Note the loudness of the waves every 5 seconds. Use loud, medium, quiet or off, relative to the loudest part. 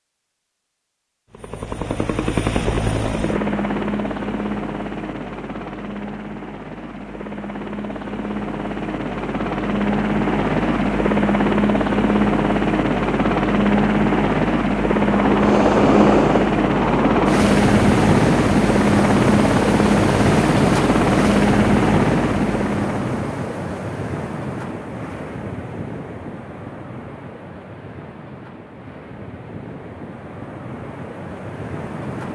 off, off, off, loud, loud, quiet, quiet.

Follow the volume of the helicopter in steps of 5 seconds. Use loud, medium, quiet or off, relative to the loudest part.
medium, medium, loud, loud, loud, off, off.